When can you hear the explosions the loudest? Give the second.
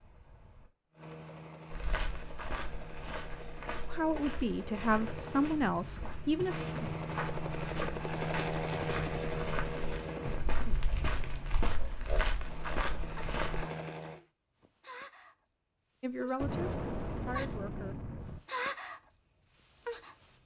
17 s.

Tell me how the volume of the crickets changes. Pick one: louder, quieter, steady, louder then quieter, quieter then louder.
quieter then louder.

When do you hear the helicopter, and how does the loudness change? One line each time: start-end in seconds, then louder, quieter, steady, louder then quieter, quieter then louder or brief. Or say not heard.
0.0-10.4 louder
12.4-14.2 brief.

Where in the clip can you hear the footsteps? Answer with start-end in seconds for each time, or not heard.
1.7-13.7.